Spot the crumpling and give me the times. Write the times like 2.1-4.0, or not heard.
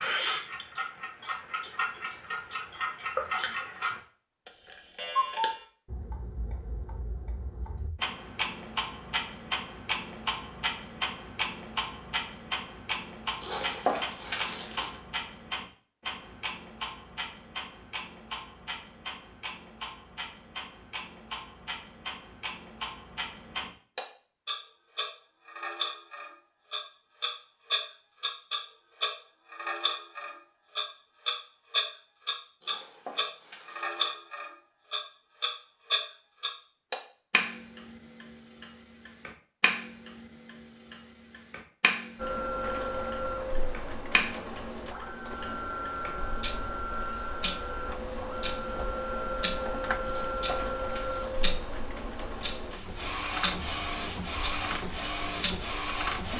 13.4-14.9, 32.6-34.1, 50.0-51.4.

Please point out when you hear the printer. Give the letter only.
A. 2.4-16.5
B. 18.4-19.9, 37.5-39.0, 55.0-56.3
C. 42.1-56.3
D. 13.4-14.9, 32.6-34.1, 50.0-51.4
C.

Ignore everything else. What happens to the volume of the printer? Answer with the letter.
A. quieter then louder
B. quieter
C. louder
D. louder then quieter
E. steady
E.